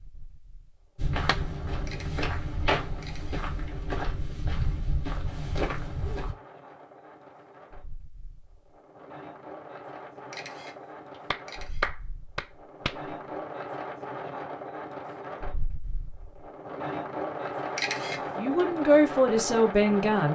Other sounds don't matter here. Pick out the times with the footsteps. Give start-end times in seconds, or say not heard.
0.9-6.3.